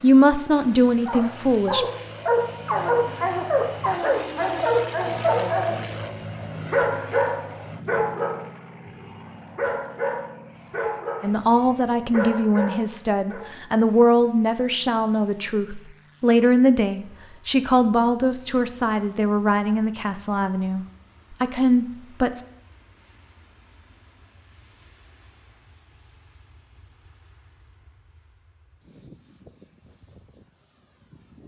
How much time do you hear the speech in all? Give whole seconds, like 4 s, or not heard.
13 s.